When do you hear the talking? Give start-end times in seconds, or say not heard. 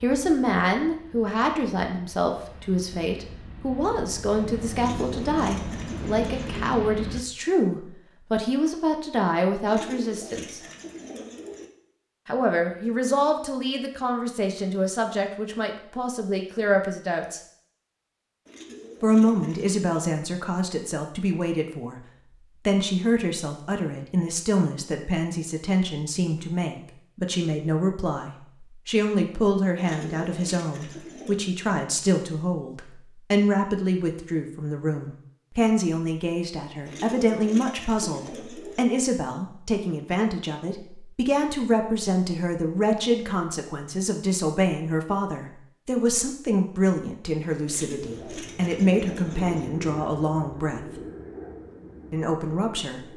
0.0-10.6, 12.2-17.4, 19.0-22.0, 22.6-51.0, 52.1-53.0.